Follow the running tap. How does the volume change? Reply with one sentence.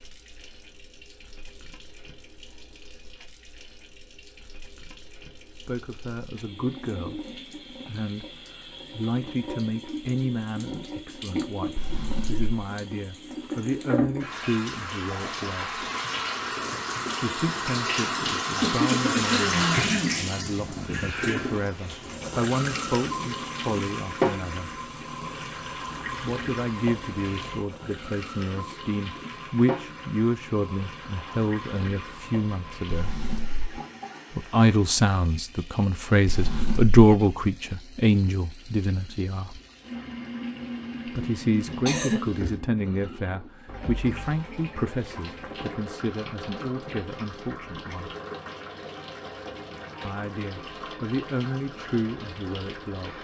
The volume of the running tap goes up, then down.